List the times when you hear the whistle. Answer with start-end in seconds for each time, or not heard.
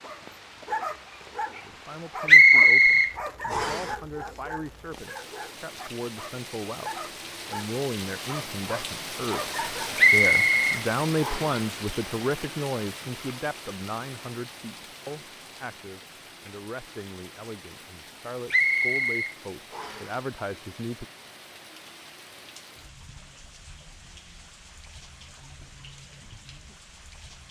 2.2-3.9, 9.9-11.6, 18.5-20.1.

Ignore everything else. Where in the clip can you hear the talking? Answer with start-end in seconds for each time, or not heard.
1.6-21.1.